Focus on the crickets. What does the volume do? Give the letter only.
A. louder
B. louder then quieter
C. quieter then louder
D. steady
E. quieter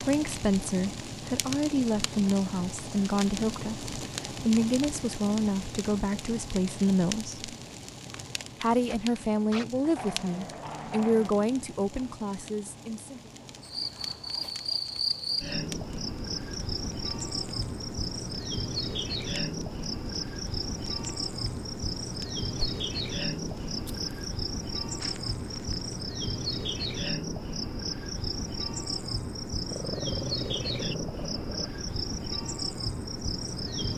D.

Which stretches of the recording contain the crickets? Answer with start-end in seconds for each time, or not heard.
13.6-33.9.